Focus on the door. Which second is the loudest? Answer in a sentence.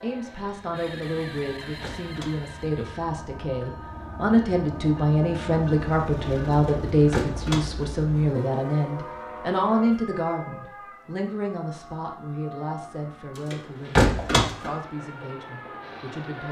The loudest moment of the door is at 14 seconds.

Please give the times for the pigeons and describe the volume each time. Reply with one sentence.
The pigeons can't be heard in this clip.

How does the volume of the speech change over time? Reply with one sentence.
The volume of the speech goes up, then down.